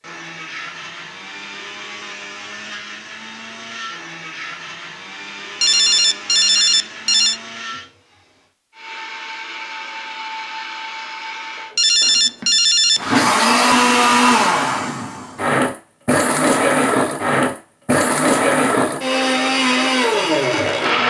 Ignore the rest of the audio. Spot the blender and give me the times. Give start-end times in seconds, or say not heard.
0.0-21.0.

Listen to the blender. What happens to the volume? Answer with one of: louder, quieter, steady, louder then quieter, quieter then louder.
louder.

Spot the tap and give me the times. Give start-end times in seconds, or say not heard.
not heard.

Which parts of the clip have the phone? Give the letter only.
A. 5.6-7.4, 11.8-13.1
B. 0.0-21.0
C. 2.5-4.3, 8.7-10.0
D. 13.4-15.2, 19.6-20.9
A.